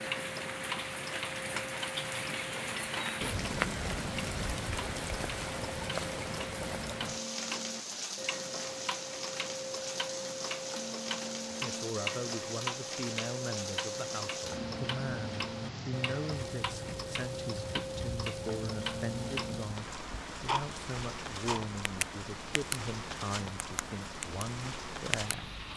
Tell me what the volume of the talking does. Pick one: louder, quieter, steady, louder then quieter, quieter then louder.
steady.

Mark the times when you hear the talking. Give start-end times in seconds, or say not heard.
11.5-25.5.